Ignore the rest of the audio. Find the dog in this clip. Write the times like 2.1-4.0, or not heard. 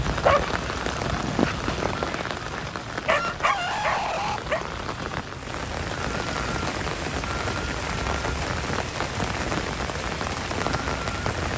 0.1-4.7.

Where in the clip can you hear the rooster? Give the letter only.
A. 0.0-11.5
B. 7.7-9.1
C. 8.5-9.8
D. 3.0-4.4
D.